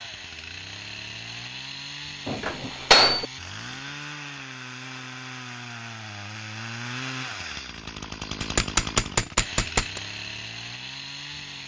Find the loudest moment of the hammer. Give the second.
3 s.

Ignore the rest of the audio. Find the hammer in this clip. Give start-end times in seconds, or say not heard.
2.2-3.2, 8.4-10.0.